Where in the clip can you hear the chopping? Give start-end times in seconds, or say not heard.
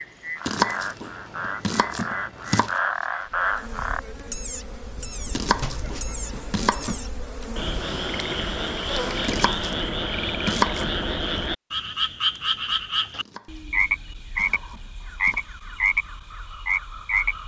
0.5-2.8, 5.3-7.0, 9.2-10.9, 13.2-15.5.